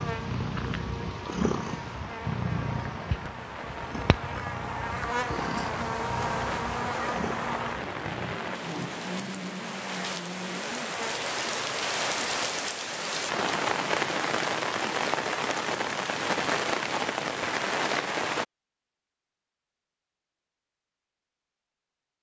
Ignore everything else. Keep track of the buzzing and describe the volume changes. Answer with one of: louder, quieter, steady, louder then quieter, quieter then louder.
louder then quieter.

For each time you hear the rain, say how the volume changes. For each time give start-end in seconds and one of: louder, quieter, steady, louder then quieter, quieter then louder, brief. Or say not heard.
0.0-18.4 louder.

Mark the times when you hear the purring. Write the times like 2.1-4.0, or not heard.
0.0-8.4.